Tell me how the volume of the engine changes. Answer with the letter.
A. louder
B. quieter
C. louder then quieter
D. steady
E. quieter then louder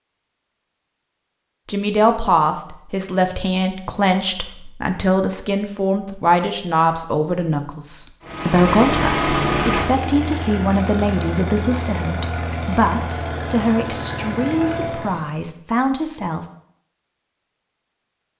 B.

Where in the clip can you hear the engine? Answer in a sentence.
The engine can be heard from 8.2 to 15.3 s.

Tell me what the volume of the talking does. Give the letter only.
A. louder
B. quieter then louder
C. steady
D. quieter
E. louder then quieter
C.